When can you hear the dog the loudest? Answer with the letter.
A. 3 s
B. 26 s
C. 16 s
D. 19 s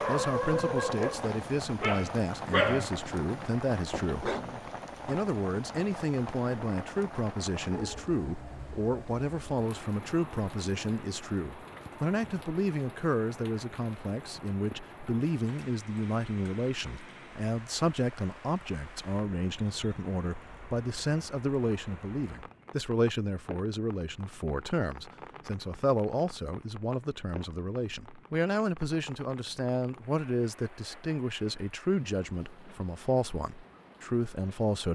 A.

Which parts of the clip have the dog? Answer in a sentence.
You can hear the dog from 0.0 to 4.5 s.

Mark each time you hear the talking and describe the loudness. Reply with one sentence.
The talking can be heard from 0.1 to 4.3 s, at a steady volume; and from 5.0 to 34.8 s, at a steady volume.